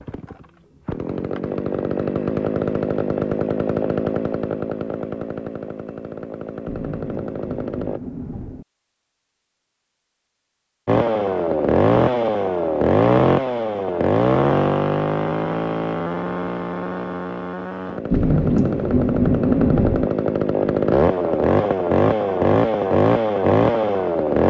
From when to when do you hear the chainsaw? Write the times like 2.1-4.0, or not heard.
0.0-8.0, 10.8-24.4.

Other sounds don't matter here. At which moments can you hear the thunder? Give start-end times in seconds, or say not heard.
6.7-8.7, 18.1-20.1.